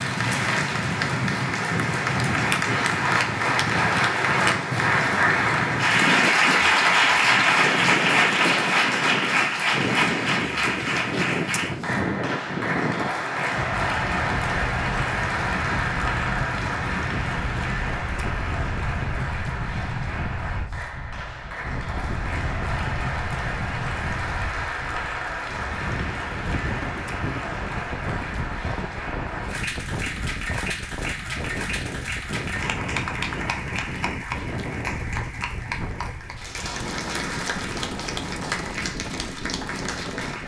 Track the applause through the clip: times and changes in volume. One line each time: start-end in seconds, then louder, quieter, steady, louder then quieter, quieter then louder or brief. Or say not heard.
0.0-40.4 quieter.